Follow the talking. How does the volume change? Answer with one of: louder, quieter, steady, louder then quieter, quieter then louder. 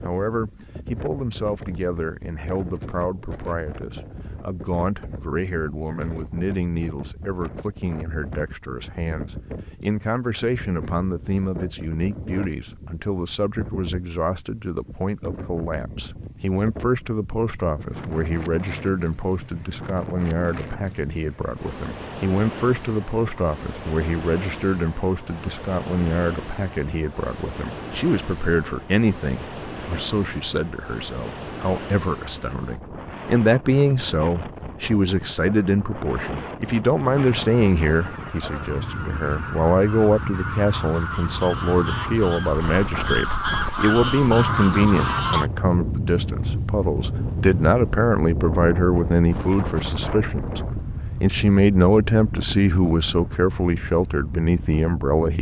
louder.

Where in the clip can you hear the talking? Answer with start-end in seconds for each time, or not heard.
0.0-50.6, 51.2-55.3.